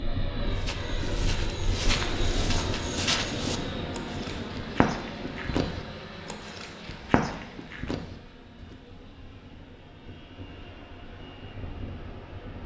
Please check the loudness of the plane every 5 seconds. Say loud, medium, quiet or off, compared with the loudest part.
loud, medium, medium.